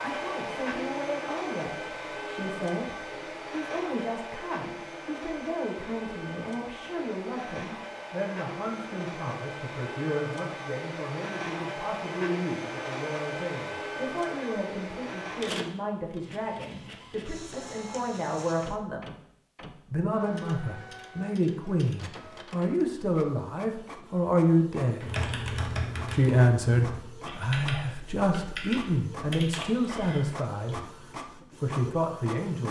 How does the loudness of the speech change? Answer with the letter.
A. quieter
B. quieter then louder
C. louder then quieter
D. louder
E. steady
D.